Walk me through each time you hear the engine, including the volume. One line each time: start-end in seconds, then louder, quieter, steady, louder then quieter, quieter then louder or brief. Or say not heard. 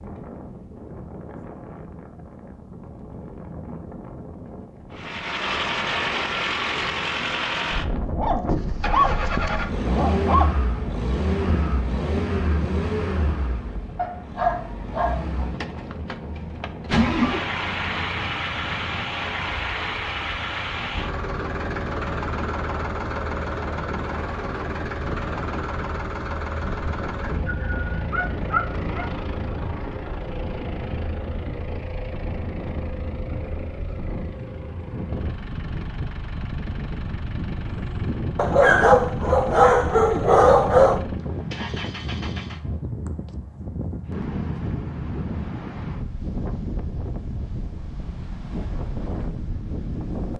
4.9-42.8 quieter.